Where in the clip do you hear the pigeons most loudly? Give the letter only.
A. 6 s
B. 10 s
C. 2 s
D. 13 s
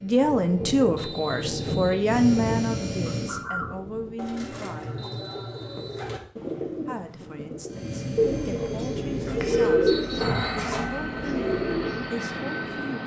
B.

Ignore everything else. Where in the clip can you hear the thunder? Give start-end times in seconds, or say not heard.
0.2-4.2.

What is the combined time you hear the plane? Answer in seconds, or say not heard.
9 s.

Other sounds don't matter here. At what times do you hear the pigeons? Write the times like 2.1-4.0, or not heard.
3.0-12.1.